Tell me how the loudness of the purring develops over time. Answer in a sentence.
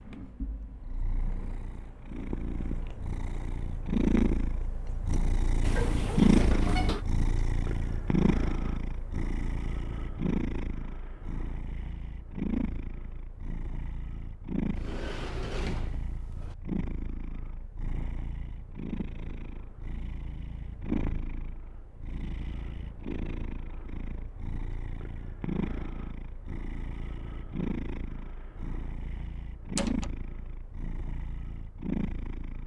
The volume of the purring goes down.